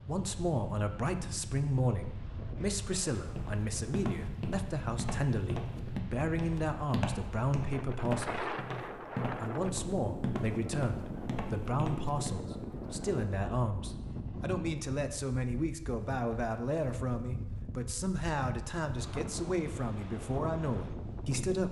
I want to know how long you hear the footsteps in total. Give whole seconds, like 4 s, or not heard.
9 s.